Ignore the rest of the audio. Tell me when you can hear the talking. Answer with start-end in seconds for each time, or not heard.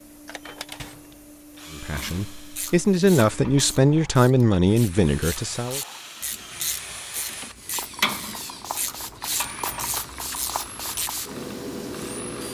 1.7-5.8.